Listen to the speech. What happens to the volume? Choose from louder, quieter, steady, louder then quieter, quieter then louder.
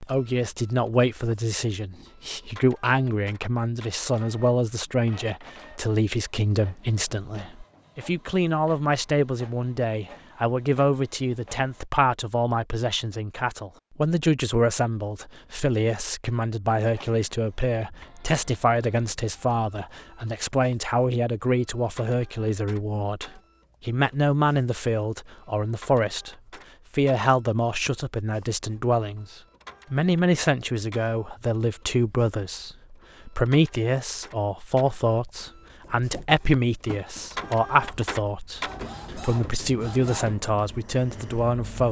steady.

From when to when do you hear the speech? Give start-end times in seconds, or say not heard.
0.1-41.8.